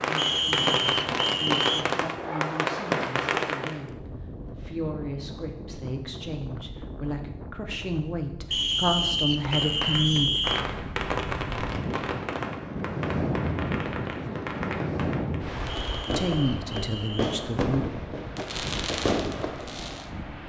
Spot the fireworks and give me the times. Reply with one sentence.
The fireworks can be heard from 0.0 to 3.8 s and from 9.3 to 20.1 s.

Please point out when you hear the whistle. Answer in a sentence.
The whistle can be heard from 0.1 to 1.9 s, from 8.5 to 10.7 s and from 15.7 to 17.4 s.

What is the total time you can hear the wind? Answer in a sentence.
You can hear the wind for 20 seconds altogether.